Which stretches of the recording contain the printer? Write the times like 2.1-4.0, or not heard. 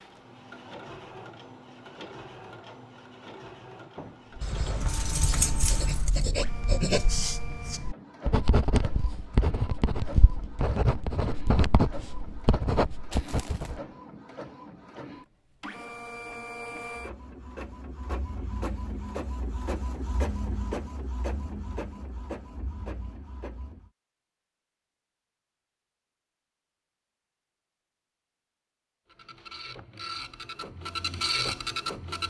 0.0-23.9, 29.1-32.2.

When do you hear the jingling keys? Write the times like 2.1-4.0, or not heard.
4.4-6.3.